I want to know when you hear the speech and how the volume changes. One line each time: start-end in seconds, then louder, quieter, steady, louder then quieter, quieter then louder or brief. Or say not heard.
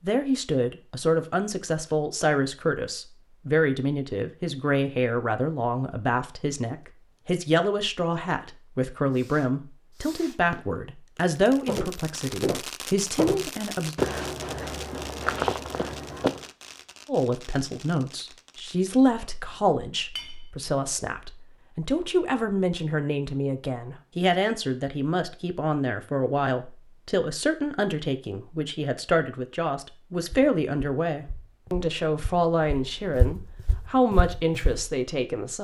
0.0-13.9 steady
17.1-35.5 steady.